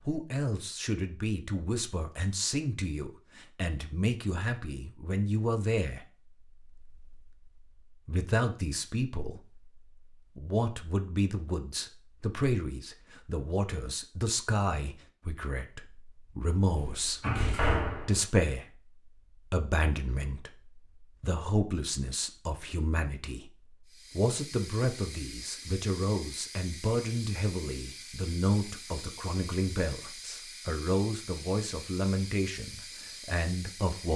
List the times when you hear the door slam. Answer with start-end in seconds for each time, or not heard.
16.8-18.2.